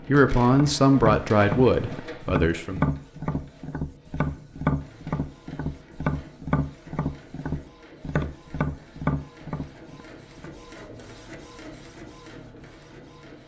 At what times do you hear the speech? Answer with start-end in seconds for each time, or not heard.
0.1-2.9.